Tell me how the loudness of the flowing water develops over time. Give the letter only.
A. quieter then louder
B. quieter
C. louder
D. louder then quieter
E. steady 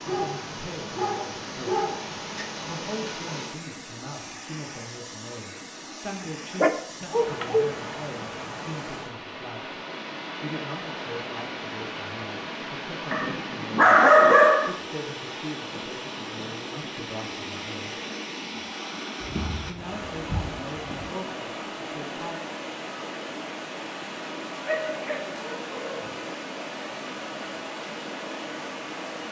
E.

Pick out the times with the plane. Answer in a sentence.
The plane can't be heard in this clip.